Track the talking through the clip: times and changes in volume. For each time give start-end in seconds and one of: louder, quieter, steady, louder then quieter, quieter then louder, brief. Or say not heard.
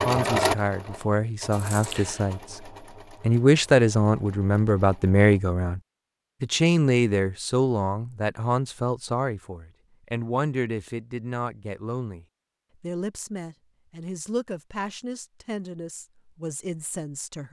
0.0-5.8 louder
6.4-17.4 quieter.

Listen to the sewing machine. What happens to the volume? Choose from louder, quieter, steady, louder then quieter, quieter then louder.
quieter.